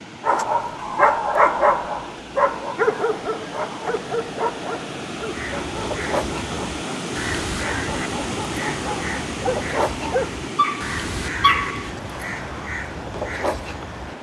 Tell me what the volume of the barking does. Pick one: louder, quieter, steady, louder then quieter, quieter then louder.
quieter then louder.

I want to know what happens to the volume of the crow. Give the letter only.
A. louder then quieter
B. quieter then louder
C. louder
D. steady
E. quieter
D.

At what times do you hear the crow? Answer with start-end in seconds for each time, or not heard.
5.2-14.1.